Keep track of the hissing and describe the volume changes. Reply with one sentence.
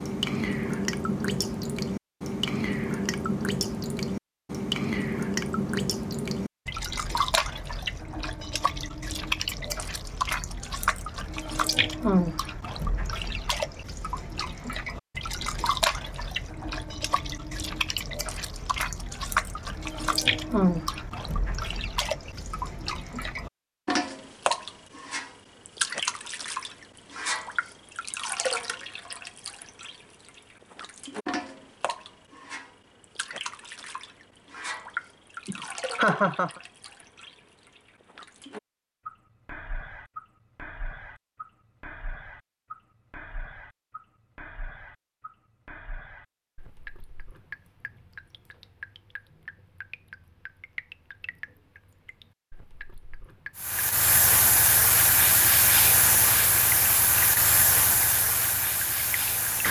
The loudness of the hissing goes down.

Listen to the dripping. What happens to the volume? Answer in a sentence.
The volume of the dripping goes down.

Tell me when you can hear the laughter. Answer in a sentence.
The laughter can be heard from 35.5 to 36.6 s.